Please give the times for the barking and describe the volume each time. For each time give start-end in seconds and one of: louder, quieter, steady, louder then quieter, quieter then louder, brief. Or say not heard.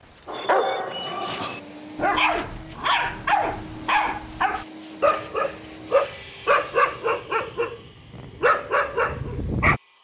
0.2-9.8 steady.